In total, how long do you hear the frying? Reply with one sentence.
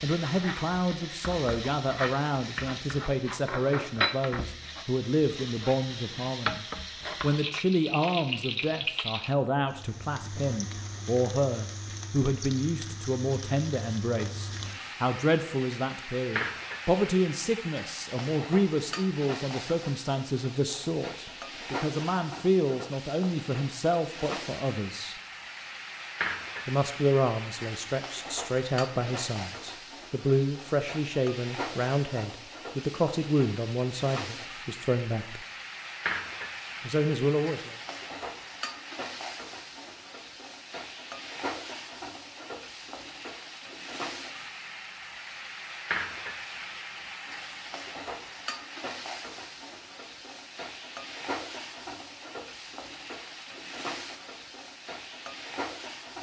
The frying can be heard for 56 seconds in total.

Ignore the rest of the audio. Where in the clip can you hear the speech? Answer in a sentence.
You can hear the speech from 0.0 to 25.2 s, from 26.6 to 35.5 s and from 36.8 to 37.8 s.